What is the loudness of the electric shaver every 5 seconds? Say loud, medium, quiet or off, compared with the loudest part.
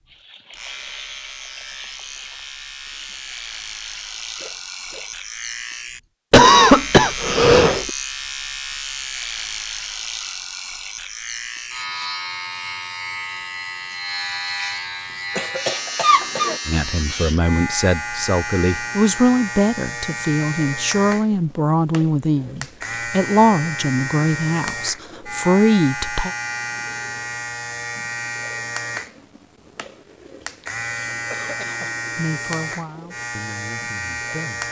medium, loud, loud, loud, loud, loud, loud.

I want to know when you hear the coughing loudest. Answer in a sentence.
The volume of the coughing peaks at 7 seconds.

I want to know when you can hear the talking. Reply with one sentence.
You can hear the talking from 16.6 to 26.3 s and from 32.1 to 34.6 s.